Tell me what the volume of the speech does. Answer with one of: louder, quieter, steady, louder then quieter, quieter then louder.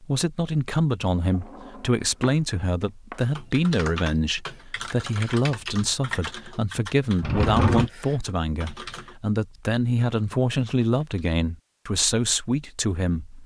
steady.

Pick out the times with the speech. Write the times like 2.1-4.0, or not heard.
0.0-13.4.